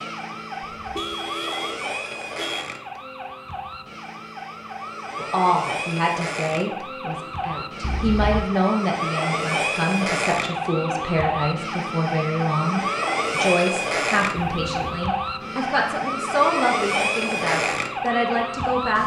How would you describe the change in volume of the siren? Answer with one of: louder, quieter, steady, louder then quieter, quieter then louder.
louder.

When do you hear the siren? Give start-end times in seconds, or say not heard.
0.0-19.0.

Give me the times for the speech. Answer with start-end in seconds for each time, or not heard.
5.2-19.0.